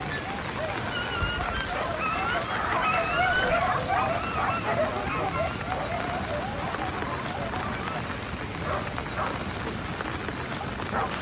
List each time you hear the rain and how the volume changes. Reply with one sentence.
You can hear the rain from 0.0 to 11.1 s, at a steady volume.